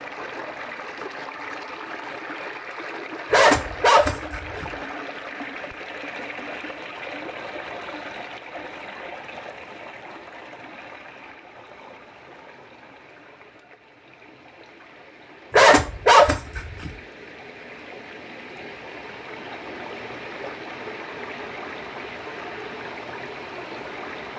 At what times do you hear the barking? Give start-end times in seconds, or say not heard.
3.3-4.7, 15.5-16.9.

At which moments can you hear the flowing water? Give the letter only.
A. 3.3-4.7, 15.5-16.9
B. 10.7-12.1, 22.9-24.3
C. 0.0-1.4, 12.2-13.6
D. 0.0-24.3
D.